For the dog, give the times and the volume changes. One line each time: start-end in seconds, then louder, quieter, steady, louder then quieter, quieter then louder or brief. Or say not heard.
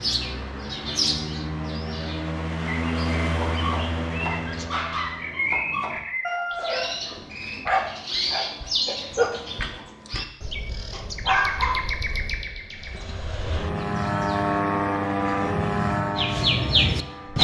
3.2-10.2 louder
10.9-11.8 brief.